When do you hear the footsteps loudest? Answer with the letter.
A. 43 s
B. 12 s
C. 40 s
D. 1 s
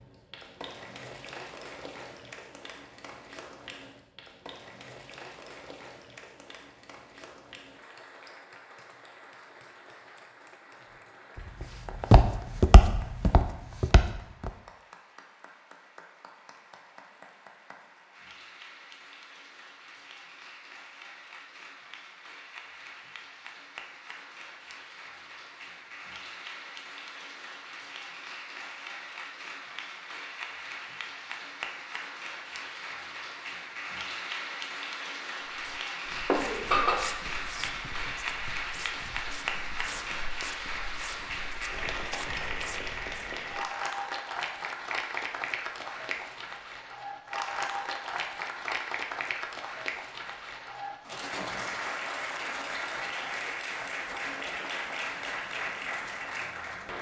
B.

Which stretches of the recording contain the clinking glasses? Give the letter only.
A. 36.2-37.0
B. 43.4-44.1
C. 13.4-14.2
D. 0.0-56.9
A.